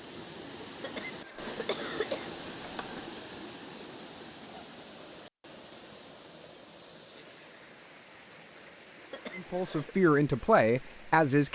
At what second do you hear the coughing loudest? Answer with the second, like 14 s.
2 s.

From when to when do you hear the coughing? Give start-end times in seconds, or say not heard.
0.8-3.1, 9.1-9.9.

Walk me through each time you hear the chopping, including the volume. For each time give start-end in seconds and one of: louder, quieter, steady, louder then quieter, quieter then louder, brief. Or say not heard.
not heard.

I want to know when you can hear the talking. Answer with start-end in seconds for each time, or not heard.
9.3-11.5.